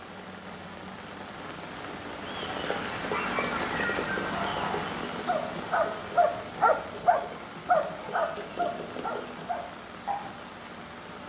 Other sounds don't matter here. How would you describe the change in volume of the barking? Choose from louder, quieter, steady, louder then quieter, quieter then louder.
louder then quieter.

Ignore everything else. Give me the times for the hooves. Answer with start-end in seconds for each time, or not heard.
2.2-9.4.